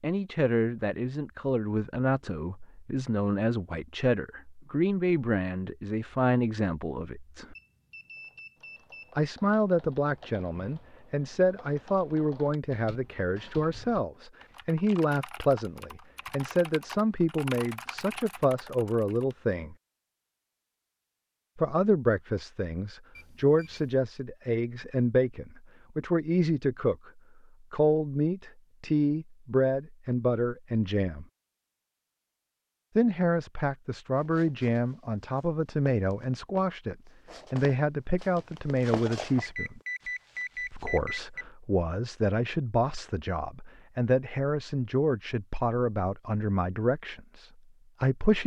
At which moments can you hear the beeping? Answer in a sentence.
You can hear the beeping from 7.5 to 9.2 s, from 23.1 to 23.9 s and from 39.4 to 41.5 s.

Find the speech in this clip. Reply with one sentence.
You can hear the speech from 0.0 to 7.5 s, from 9.2 to 19.8 s, from 21.6 to 27.1 s, from 27.7 to 31.2 s, from 33.0 to 39.8 s and from 40.7 to 48.4 s.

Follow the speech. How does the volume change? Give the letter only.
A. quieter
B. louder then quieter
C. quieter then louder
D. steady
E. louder
D.